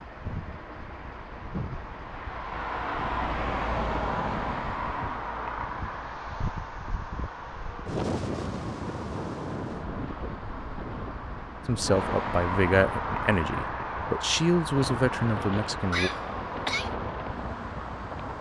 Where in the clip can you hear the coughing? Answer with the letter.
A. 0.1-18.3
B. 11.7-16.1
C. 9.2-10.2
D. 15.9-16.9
D.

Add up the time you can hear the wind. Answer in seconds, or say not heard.
18 s.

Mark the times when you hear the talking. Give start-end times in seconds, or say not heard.
11.7-16.1.